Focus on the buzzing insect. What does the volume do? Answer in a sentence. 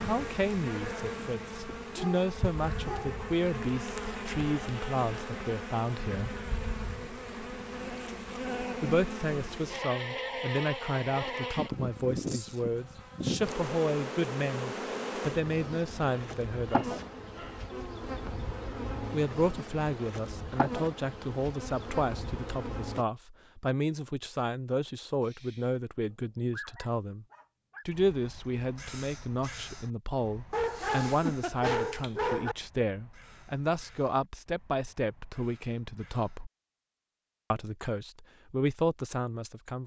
The volume of the buzzing insect stays about the same.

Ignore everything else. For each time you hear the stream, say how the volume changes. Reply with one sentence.
The stream can't be heard in this clip.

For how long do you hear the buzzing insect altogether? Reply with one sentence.
You can hear the buzzing insect for 23 seconds altogether.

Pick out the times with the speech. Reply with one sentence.
You can hear the speech from 0.0 to 6.4 s, from 8.8 to 17.0 s, from 19.1 to 27.2 s, from 27.9 to 36.5 s and from 37.5 to 39.8 s.